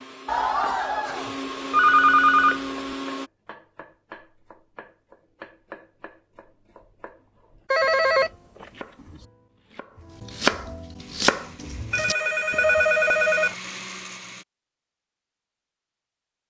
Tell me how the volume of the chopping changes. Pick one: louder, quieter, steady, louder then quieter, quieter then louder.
quieter then louder.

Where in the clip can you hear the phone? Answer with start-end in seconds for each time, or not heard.
0.2-2.7, 7.7-8.7, 11.9-13.6.